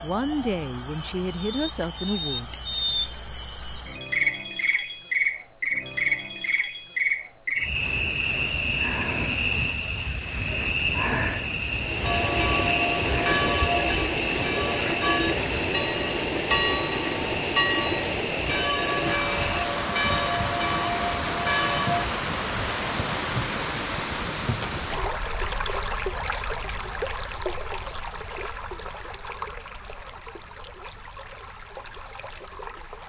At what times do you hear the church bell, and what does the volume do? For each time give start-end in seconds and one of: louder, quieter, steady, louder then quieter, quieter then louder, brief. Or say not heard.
12.0-22.1 steady.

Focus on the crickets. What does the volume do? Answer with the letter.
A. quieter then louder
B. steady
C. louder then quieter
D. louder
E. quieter
E.